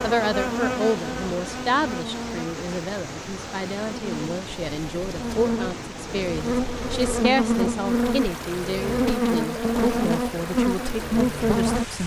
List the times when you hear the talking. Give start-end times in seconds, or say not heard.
0.0-12.0.